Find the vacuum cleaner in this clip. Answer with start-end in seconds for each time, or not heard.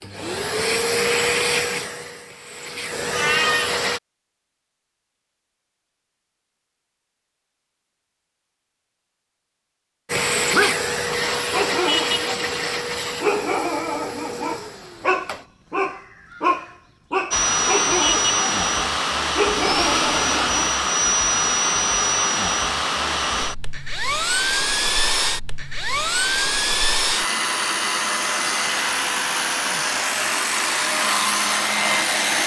0.0-4.0, 10.1-15.4, 17.3-32.4.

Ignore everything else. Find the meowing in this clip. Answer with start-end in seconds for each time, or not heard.
2.9-3.8.